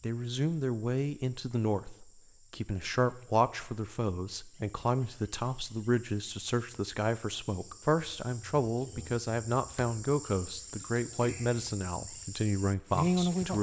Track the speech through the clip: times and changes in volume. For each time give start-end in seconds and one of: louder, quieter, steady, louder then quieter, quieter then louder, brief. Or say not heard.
0.0-13.5 steady.